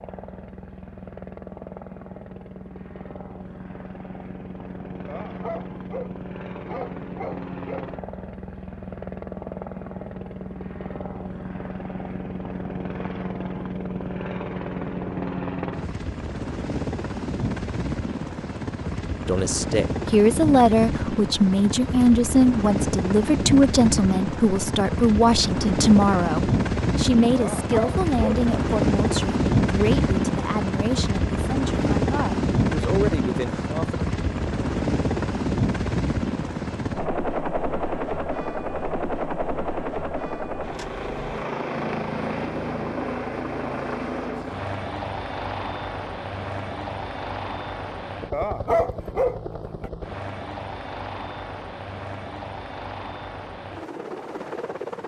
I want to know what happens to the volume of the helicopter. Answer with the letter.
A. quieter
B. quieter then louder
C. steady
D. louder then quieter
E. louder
D.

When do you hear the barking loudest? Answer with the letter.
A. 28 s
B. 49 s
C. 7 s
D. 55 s
B.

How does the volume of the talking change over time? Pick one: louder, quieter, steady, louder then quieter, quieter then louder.
quieter.